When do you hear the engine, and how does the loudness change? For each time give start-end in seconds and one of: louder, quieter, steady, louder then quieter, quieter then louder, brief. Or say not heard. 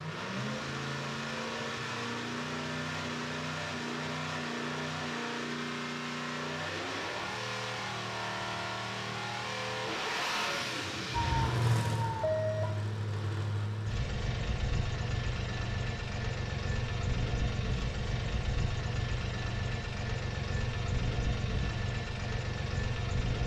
0.0-23.4 steady.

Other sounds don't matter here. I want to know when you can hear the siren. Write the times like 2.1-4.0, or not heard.
11.1-12.8.